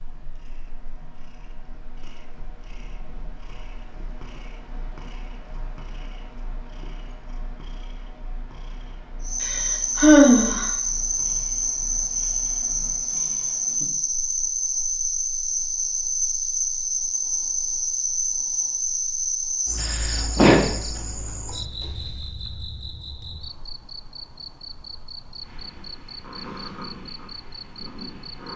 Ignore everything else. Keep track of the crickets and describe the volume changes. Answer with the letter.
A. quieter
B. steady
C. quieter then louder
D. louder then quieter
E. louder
A.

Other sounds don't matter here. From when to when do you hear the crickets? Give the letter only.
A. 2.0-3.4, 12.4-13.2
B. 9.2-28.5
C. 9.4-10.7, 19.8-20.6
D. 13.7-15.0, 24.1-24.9
B.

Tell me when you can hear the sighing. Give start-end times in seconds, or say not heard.
9.4-10.7, 19.8-20.6.